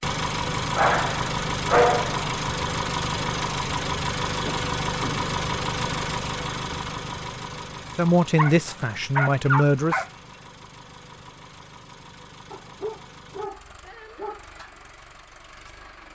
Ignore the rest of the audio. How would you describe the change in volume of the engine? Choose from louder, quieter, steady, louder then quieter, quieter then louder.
quieter.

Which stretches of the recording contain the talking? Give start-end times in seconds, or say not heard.
8.0-10.0.